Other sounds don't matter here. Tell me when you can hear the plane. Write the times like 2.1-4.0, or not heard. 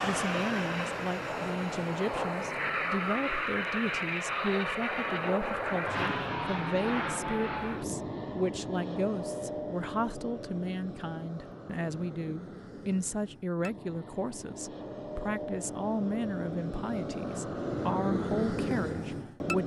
0.0-19.6.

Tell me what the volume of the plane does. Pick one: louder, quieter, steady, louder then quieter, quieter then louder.
quieter then louder.